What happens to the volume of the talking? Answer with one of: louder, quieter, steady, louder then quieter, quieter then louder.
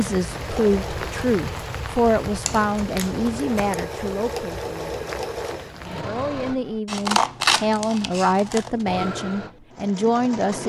quieter then louder.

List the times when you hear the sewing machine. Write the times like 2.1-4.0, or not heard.
0.0-6.8, 8.8-10.6.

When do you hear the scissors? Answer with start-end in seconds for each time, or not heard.
2.5-3.8, 6.8-8.8.